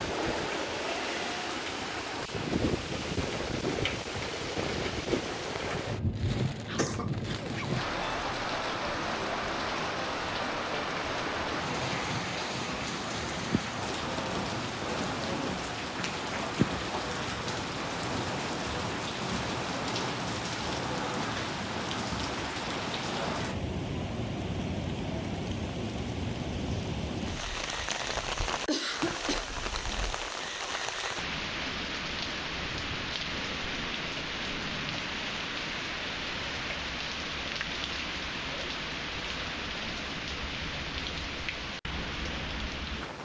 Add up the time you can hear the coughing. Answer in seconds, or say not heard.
2 s.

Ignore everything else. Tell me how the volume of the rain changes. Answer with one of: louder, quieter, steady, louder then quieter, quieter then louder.
steady.